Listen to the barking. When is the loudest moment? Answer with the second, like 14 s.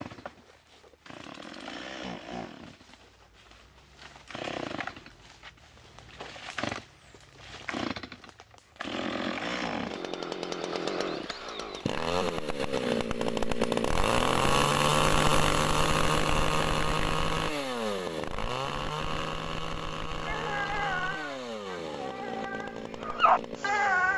23 s.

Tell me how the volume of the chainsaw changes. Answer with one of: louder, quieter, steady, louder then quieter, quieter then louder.
louder then quieter.